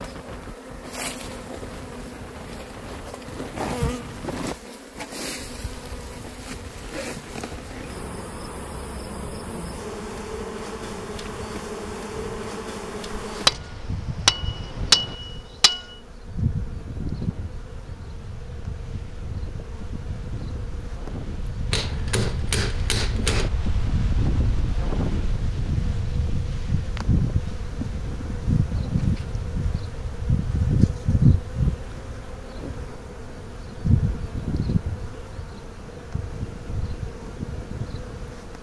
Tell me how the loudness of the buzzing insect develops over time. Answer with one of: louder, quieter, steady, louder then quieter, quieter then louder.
louder.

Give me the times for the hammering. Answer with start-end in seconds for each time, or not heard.
13.2-15.9, 21.7-23.5.